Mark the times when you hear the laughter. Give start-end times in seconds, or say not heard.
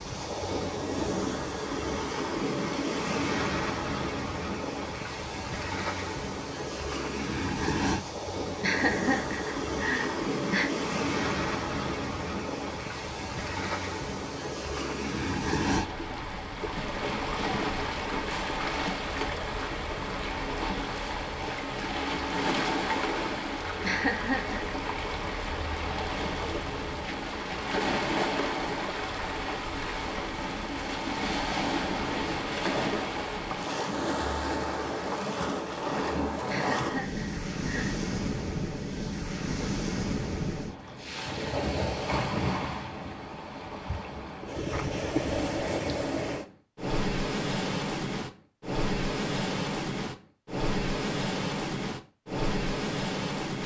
8.6-10.7, 23.8-24.8, 36.5-38.0.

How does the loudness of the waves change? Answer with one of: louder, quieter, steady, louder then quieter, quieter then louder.
steady.